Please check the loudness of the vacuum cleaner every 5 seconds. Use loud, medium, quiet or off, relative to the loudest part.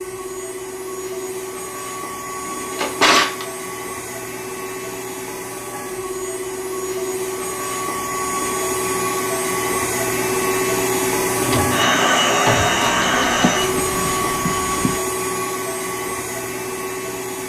medium, medium, loud, medium.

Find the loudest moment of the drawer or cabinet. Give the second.
3 s.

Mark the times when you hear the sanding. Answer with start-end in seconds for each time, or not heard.
12.9-15.0.